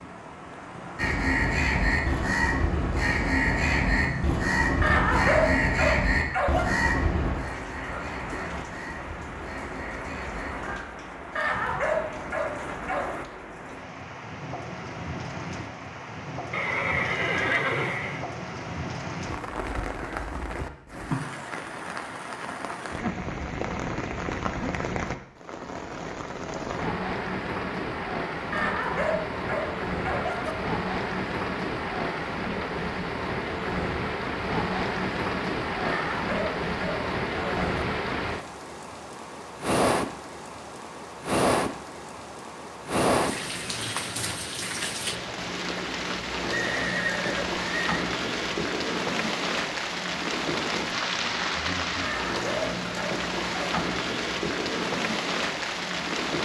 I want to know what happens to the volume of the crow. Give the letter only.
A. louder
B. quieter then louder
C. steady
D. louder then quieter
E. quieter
E.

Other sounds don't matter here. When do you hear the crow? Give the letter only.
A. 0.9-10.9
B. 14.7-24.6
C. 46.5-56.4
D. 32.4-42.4
A.